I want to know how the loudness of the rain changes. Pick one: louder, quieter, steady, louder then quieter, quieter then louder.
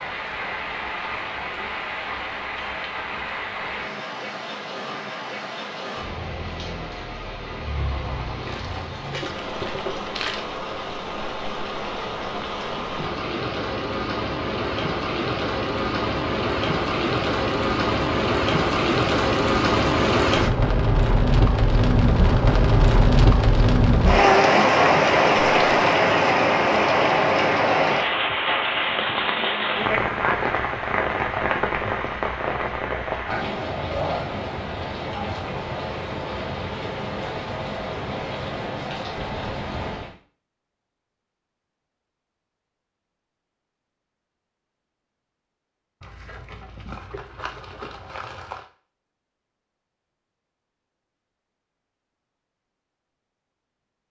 louder then quieter.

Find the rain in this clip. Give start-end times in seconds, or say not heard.
0.0-40.1.